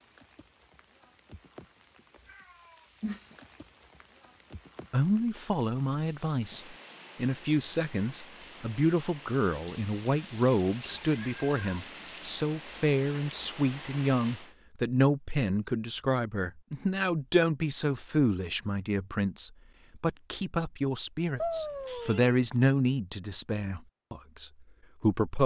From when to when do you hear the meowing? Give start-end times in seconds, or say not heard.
2.2-3.2, 10.8-11.8, 21.4-22.4.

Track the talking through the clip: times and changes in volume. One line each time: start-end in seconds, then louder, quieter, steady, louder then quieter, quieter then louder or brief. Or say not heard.
4.9-25.4 steady.